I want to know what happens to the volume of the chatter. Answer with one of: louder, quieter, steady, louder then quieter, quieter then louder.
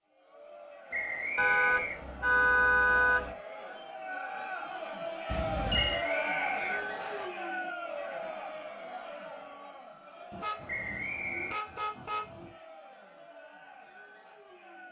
louder then quieter.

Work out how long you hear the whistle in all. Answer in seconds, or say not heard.
4 s.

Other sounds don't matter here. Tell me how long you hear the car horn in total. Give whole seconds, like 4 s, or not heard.
5 s.